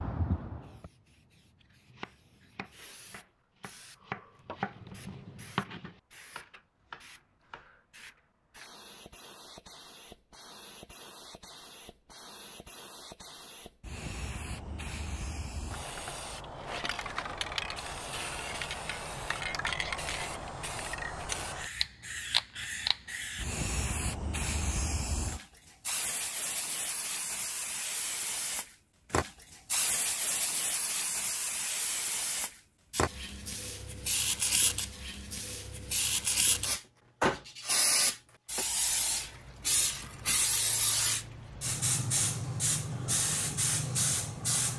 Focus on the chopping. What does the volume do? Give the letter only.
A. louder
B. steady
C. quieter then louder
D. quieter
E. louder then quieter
E.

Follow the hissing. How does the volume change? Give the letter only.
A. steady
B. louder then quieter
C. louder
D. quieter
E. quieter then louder
C.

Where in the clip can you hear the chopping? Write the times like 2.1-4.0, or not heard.
1.8-7.7.